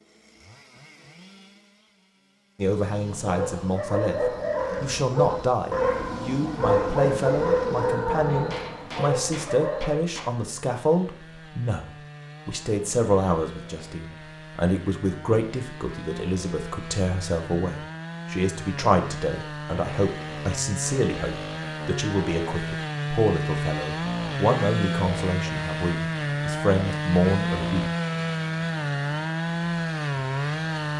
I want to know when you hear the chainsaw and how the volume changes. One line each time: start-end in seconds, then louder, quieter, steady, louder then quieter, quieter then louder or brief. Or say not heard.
0.0-30.9 louder.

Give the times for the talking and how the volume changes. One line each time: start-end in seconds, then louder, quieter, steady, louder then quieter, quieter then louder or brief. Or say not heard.
2.5-27.9 steady.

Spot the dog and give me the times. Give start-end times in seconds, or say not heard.
3.0-10.0.